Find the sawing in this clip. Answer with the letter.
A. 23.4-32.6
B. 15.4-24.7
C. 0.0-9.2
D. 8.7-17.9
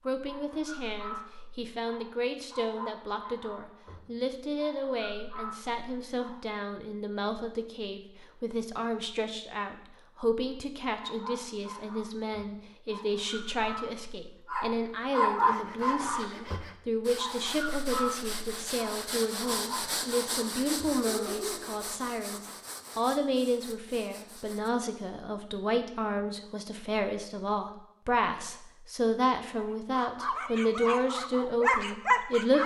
B.